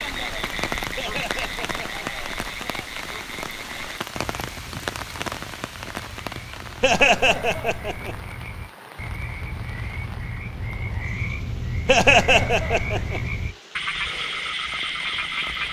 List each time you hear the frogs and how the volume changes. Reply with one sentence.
You can hear the frogs from 0.0 to 15.6 s, getting quieter then louder.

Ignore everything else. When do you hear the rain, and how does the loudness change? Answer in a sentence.
The rain can be heard from 0.0 to 15.6 s, getting quieter.